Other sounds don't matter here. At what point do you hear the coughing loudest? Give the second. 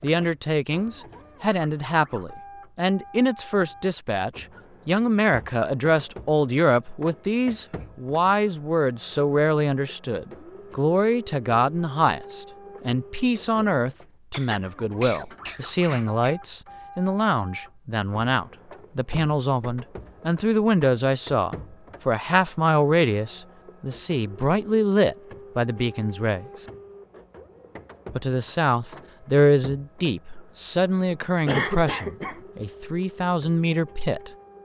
32 s.